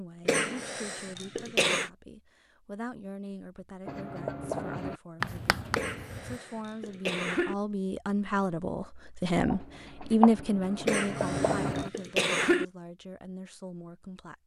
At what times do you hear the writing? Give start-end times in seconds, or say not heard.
3.9-6.4, 9.4-11.9.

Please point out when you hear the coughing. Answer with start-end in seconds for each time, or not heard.
0.2-1.9, 5.7-7.5, 10.8-12.7.